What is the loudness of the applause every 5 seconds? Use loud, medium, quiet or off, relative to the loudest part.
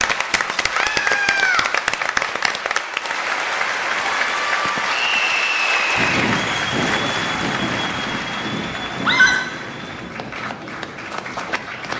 loud, loud, medium.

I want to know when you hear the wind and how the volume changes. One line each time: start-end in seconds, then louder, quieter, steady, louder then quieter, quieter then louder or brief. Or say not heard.
6.0-11.9 quieter.